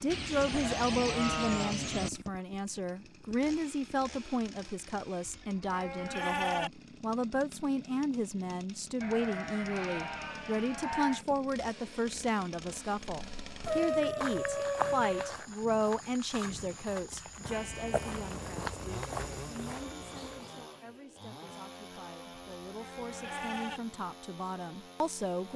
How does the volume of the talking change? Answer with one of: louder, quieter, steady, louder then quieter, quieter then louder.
quieter.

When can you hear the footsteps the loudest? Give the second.
15 s.